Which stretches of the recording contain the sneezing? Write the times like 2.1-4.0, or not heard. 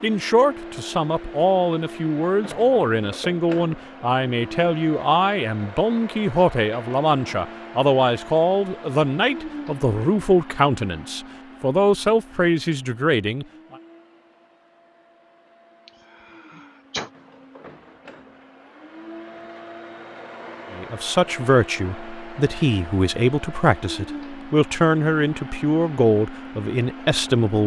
15.8-17.1.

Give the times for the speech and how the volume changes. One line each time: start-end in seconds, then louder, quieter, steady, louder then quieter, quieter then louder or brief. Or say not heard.
0.0-13.4 steady
20.7-27.6 steady.